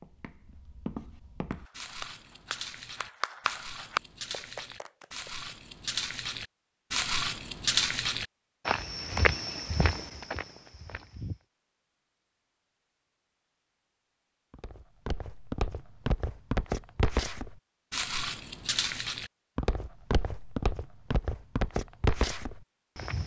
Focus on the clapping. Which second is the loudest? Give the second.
4 s.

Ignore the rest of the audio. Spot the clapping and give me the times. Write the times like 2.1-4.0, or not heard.
1.5-5.5.